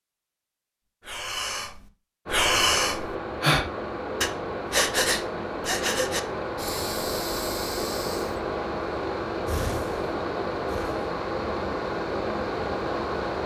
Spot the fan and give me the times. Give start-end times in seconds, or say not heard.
2.2-13.4.